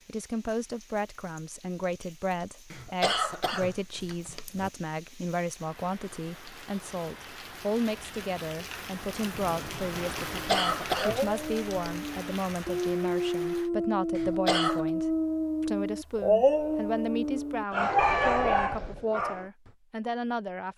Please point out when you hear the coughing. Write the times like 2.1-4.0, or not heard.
2.7-4.7, 10.3-11.8, 14.2-14.9.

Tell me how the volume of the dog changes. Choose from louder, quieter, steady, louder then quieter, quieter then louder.
louder.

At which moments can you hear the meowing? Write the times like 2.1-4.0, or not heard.
17.9-19.1.